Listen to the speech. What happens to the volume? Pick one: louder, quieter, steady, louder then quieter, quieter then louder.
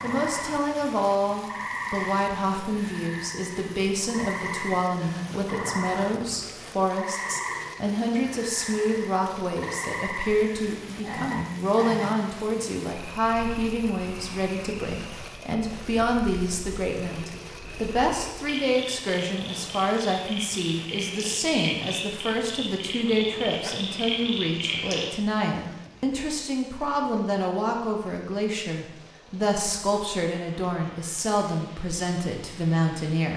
steady.